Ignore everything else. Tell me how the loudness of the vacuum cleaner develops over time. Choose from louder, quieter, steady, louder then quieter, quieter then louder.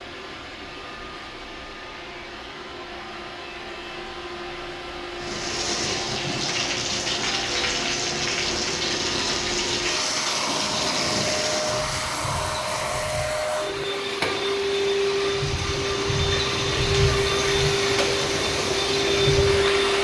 louder.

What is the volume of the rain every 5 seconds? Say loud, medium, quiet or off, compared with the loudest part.
off, loud, loud, loud.